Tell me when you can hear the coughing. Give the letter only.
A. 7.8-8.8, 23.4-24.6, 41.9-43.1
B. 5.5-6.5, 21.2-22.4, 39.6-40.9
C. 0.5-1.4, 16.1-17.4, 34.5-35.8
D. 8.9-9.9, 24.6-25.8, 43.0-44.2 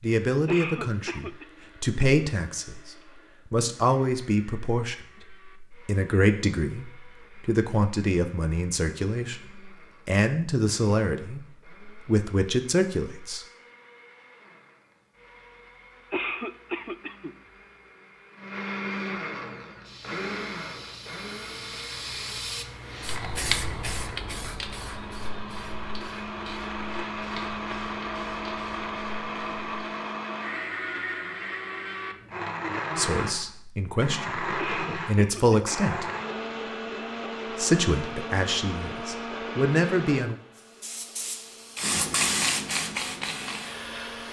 C.